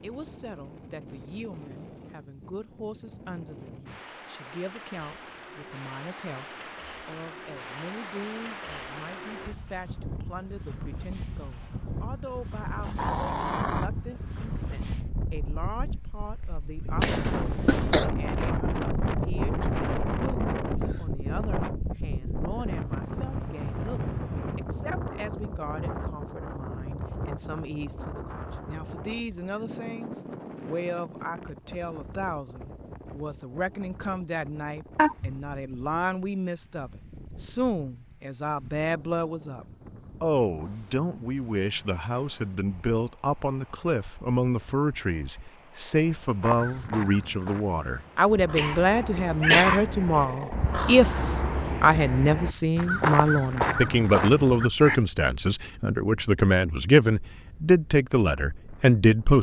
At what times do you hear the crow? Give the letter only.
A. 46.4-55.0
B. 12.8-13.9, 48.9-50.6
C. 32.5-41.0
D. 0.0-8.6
A.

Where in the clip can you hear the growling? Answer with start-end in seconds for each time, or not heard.
12.8-13.9, 48.9-50.6.